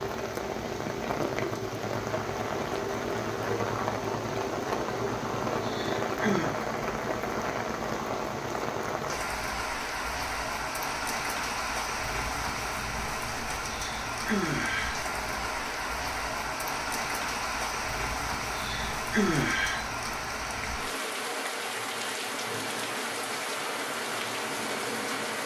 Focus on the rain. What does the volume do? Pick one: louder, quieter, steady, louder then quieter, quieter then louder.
steady.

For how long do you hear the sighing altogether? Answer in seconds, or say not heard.
4 s.